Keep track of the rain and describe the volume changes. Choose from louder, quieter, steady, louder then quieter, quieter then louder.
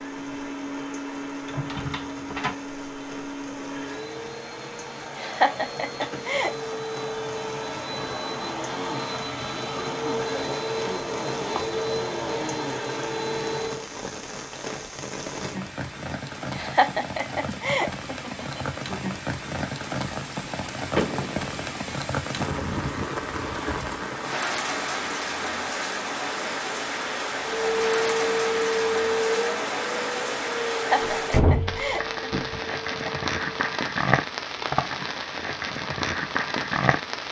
louder.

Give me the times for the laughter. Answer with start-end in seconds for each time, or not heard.
5.2-6.8, 16.5-18.8, 30.7-33.2.